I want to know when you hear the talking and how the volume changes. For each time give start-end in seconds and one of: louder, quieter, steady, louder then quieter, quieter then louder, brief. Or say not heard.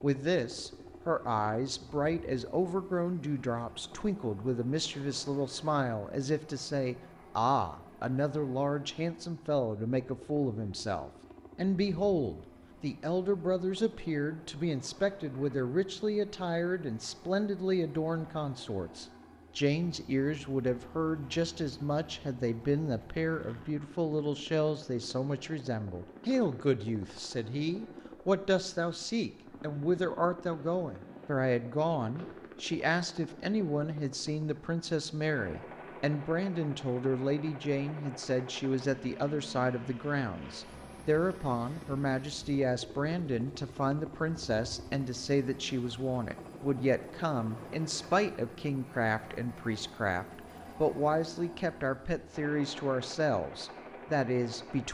0.0-54.8 steady.